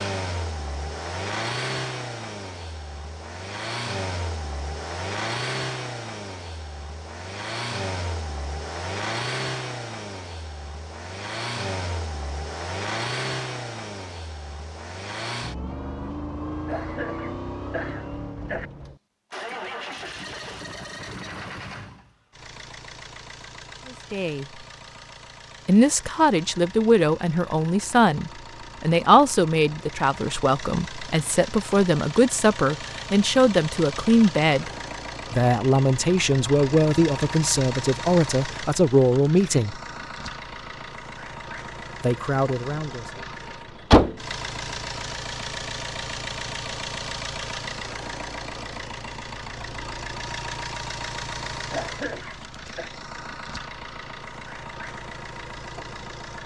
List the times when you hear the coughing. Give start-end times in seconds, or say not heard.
16.6-18.7, 51.7-52.9.